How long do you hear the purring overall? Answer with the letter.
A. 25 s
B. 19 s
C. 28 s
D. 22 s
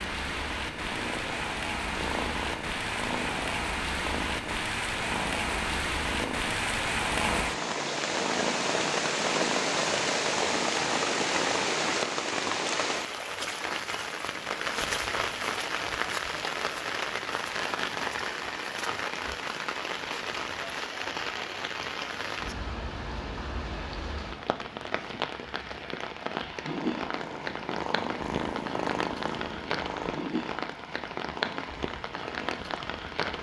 B.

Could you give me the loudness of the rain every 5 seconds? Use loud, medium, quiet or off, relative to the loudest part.
loud, loud, loud, loud, medium, medium, medium.